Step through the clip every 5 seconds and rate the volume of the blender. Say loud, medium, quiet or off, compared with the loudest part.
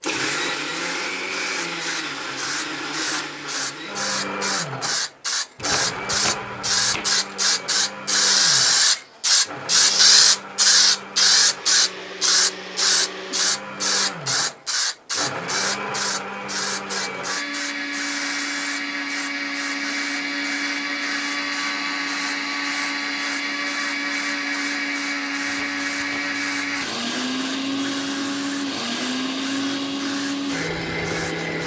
loud, medium, medium, loud, loud, loud, loud.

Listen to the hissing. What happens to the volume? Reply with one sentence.
The volume of the hissing goes up, then down.